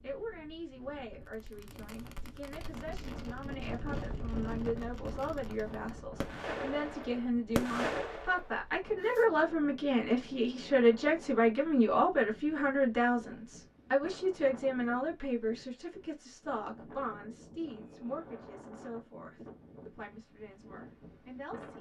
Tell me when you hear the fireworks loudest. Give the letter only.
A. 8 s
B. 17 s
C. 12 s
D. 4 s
A.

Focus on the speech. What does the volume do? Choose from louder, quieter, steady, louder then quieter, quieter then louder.
louder then quieter.